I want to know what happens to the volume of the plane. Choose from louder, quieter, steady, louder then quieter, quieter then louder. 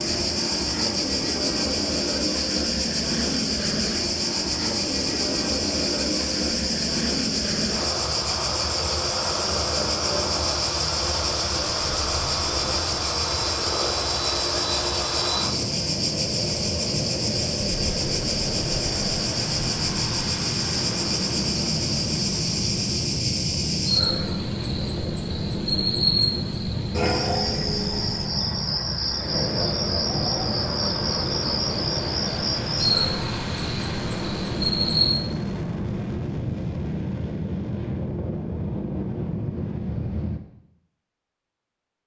steady.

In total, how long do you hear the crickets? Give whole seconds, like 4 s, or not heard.
35 s.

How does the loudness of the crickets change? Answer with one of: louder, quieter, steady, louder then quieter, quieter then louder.
steady.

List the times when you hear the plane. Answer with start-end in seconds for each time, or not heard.
0.0-40.4.